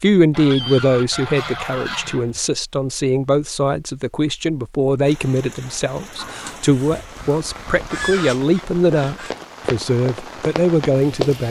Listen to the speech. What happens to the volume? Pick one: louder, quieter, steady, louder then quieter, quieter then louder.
steady.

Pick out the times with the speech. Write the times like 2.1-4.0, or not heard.
0.0-11.4.